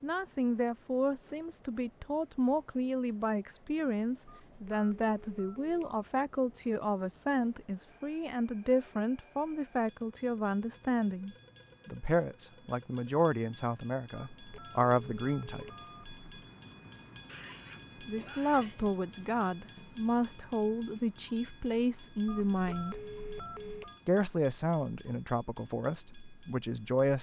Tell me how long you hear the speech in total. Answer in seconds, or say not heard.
24 s.